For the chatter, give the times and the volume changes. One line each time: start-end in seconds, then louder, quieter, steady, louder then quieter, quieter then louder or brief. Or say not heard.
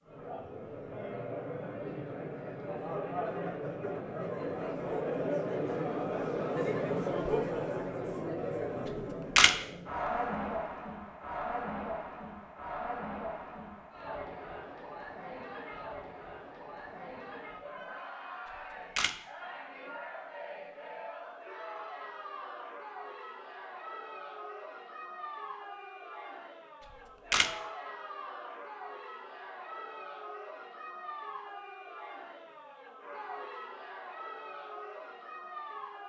0.0-36.0 quieter.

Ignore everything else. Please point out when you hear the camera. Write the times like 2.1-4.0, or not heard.
8.9-9.6, 18.5-19.1, 26.9-27.5.